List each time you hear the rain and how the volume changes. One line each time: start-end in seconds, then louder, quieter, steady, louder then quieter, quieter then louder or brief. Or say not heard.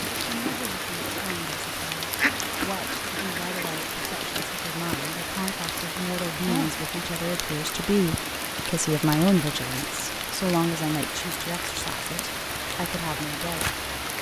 0.0-14.1 steady.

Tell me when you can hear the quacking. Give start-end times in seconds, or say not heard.
2.1-3.9.